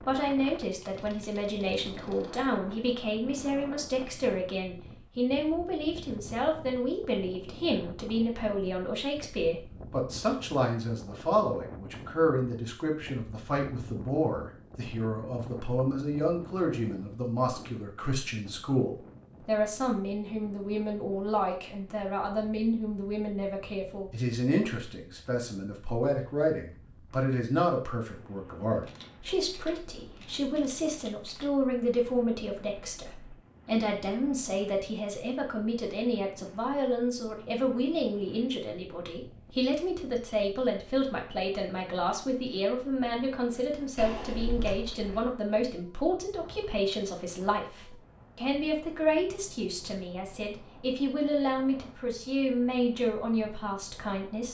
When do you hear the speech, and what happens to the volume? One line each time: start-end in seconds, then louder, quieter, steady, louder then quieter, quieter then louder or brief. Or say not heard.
0.0-54.5 steady.